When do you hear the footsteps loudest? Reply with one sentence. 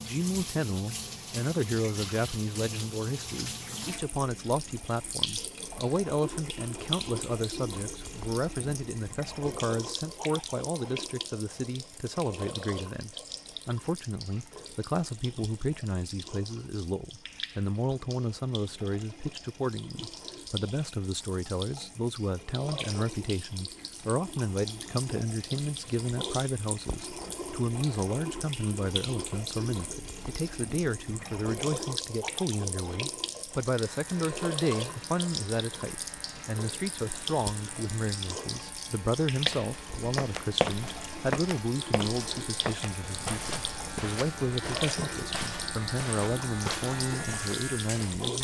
The loudest moment of the footsteps is at 41 seconds.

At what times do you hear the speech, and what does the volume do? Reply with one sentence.
The speech can be heard from 0.0 to 48.3 s, at a steady volume.